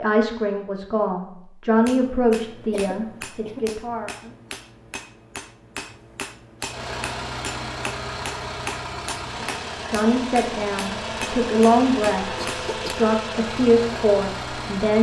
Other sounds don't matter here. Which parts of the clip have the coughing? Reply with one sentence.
You can hear the coughing from 2.7 to 3.7 s and from 12.3 to 13.1 s.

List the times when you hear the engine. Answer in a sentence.
The engine can be heard from 6.6 to 14.9 s.